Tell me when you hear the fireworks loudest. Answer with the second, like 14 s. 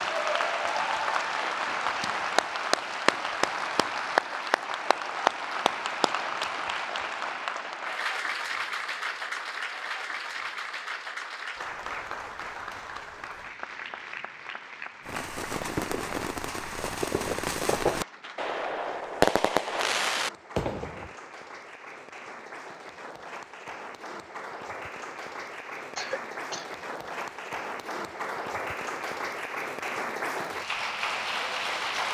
19 s.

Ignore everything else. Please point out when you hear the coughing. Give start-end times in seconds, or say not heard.
25.9-26.8.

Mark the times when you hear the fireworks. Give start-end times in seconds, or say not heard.
15.0-21.1.